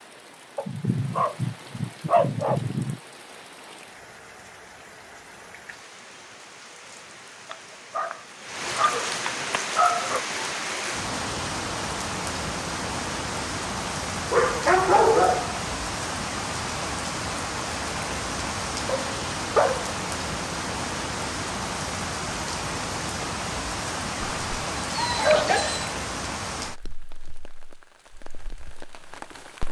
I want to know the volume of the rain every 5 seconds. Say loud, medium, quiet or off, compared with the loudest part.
quiet, medium, loud, loud, loud, medium.